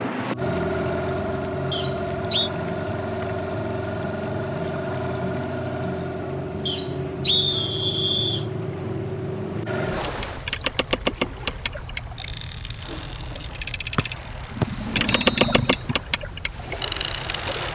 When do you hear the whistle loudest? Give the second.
7 s.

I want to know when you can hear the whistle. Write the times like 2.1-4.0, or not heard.
1.7-2.5, 6.7-8.4, 13.9-15.6.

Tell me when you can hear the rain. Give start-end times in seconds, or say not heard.
not heard.